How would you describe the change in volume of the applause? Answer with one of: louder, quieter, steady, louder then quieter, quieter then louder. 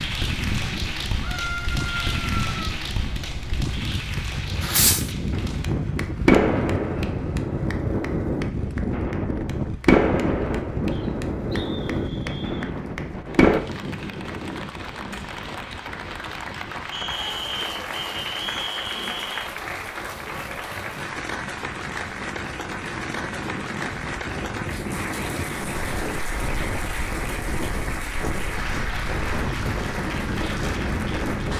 quieter then louder.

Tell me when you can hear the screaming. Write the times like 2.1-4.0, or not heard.
1.2-2.6.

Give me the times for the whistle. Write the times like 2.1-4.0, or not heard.
10.9-12.7, 16.9-19.5.